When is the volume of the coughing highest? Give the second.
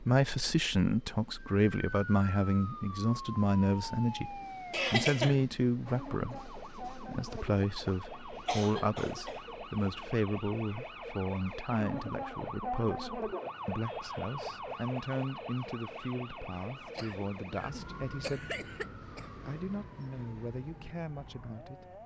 5 s.